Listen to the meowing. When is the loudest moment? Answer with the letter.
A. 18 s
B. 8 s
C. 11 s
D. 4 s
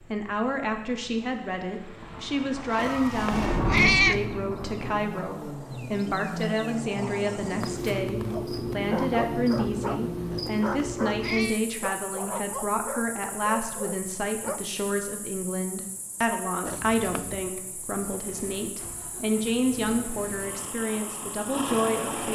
D.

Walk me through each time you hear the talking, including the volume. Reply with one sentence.
The talking can be heard from 0.1 to 22.2 s, at a steady volume.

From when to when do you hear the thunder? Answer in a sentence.
You can hear the thunder from 2.0 to 5.0 s.